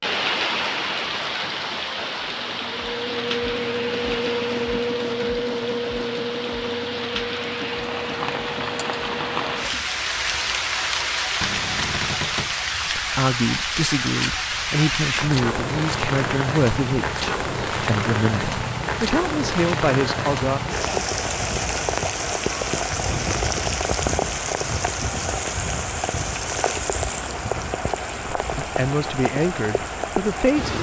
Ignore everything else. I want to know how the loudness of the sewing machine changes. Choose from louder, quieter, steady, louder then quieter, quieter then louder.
quieter.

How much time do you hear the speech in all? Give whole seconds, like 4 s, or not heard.
10 s.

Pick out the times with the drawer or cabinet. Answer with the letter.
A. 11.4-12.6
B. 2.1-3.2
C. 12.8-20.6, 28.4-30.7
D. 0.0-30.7
A.